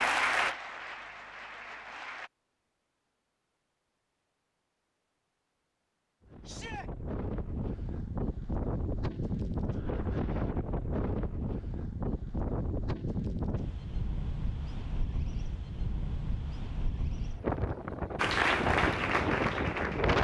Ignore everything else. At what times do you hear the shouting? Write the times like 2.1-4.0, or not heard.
6.5-6.9.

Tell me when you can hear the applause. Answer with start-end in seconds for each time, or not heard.
0.0-2.3, 18.1-20.2.